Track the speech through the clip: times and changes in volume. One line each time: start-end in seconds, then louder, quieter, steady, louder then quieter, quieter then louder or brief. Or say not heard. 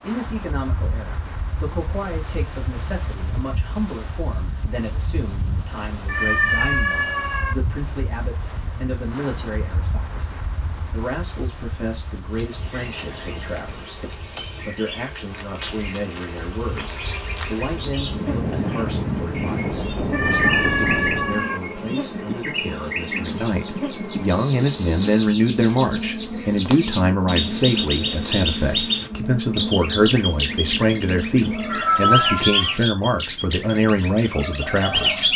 0.0-35.3 louder.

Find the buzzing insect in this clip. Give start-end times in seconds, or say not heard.
12.2-31.9.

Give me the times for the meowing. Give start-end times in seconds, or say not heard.
6.0-7.5, 20.1-21.6, 31.6-32.8.